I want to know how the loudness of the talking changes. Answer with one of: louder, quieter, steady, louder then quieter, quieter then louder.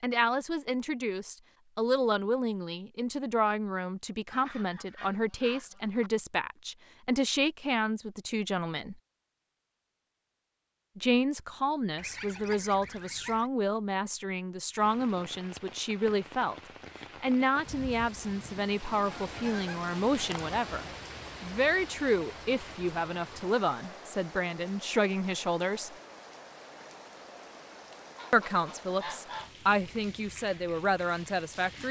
steady.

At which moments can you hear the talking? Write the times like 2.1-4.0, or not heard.
0.0-8.9, 10.9-16.6, 17.2-25.9, 28.3-31.8.